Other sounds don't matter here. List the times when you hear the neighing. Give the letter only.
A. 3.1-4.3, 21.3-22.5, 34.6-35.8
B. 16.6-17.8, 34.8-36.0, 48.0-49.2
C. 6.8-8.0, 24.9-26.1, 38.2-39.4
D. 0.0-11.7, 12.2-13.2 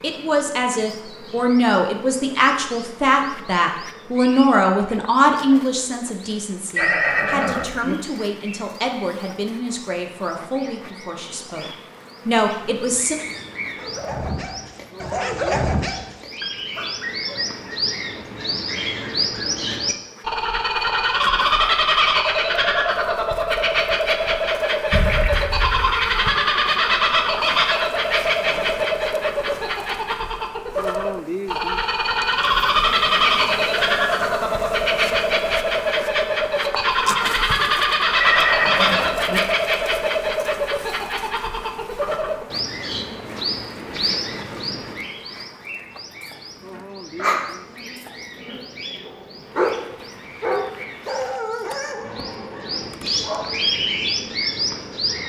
C.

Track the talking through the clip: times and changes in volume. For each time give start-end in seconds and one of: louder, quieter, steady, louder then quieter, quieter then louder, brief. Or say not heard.
0.0-11.7 quieter
12.2-13.2 brief.